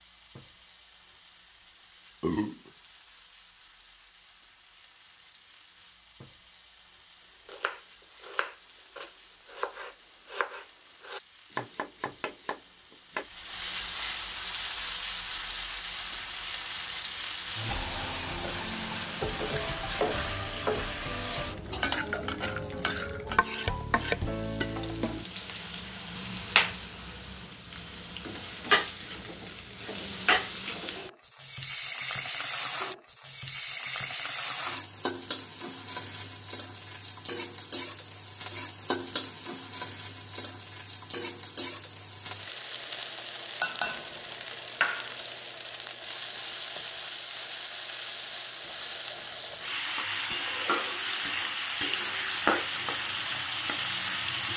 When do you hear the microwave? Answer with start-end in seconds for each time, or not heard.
not heard.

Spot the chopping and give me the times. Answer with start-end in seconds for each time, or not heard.
7.5-13.2.